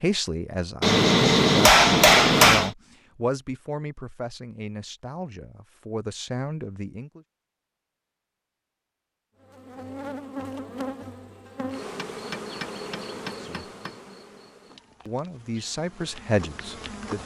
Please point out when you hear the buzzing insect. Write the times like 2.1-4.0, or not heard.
9.4-17.2.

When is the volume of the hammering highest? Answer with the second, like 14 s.
2 s.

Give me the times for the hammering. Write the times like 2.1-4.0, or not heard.
0.8-2.7, 11.9-13.9.